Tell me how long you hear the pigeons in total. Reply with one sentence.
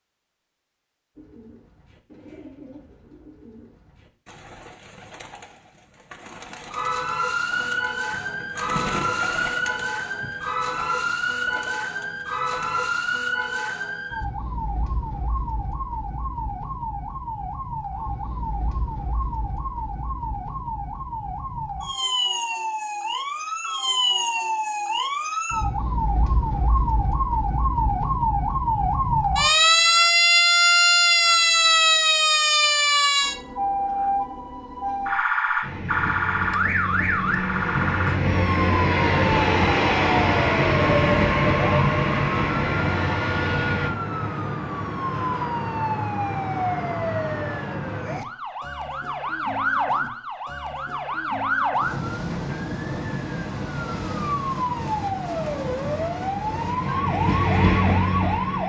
You can hear the pigeons for 12 seconds altogether.